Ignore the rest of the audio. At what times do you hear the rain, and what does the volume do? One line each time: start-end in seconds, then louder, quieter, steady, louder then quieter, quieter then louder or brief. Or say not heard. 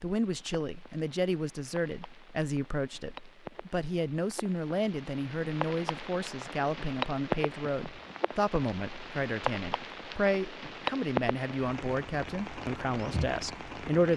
0.0-14.1 louder.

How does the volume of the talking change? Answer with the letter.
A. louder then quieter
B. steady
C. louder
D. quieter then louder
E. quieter
B.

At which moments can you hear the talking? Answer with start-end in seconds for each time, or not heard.
0.0-14.1.